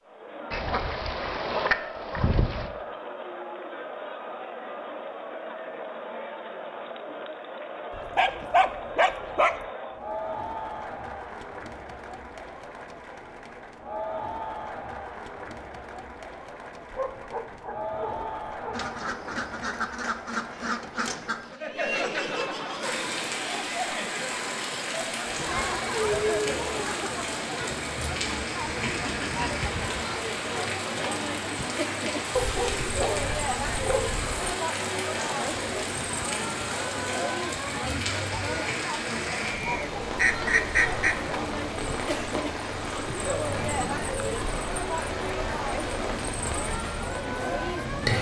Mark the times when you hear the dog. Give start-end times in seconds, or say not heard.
8.0-9.6, 16.9-18.8, 32.4-34.4.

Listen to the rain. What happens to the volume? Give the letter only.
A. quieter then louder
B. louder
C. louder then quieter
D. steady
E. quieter
D.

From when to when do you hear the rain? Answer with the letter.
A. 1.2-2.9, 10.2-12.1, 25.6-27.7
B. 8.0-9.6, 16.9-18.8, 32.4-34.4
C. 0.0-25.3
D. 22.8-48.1
D.